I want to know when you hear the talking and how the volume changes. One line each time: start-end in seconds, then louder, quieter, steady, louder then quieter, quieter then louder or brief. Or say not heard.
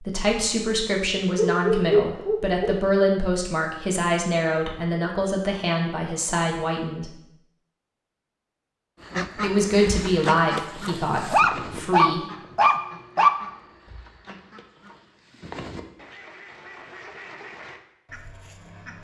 0.0-7.2 steady
9.3-12.2 brief.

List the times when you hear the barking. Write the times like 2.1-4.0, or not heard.
1.4-2.6, 11.3-13.3.